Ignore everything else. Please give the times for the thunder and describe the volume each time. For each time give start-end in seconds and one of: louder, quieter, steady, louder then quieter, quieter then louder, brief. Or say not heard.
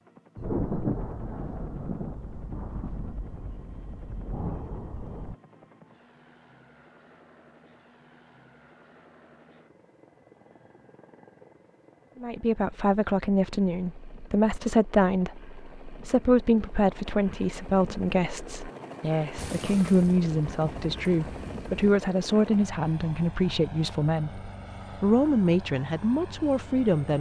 0.3-5.3 quieter then louder
19.4-21.9 brief.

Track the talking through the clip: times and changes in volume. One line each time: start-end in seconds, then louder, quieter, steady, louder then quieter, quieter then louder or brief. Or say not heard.
12.2-27.1 steady.